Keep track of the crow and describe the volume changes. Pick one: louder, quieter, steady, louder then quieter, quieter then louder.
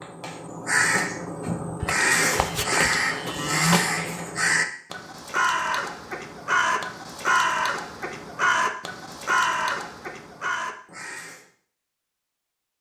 steady.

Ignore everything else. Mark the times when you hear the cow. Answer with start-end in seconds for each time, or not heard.
1.8-3.8.